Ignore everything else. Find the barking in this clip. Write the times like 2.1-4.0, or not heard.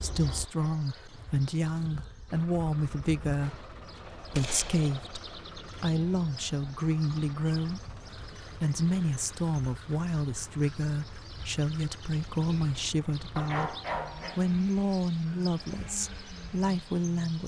0.1-1.2, 13.3-14.4.